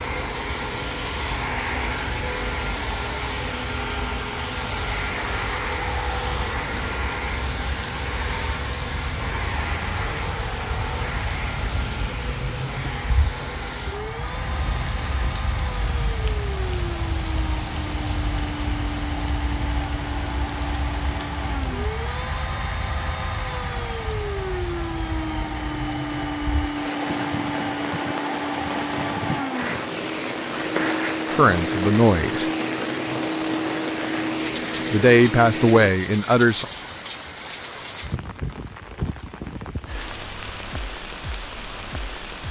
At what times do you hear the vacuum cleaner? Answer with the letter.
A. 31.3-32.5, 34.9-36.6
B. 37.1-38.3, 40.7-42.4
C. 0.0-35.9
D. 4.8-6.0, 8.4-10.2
C.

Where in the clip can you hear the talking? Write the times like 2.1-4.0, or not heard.
31.3-32.5, 34.9-36.6.